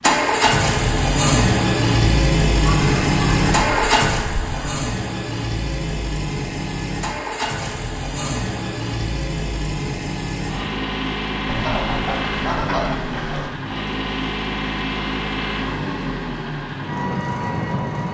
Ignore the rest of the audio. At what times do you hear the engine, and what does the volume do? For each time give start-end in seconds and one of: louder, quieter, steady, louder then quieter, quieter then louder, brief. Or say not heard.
0.0-18.0 quieter.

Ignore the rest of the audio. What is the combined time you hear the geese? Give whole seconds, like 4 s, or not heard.
4 s.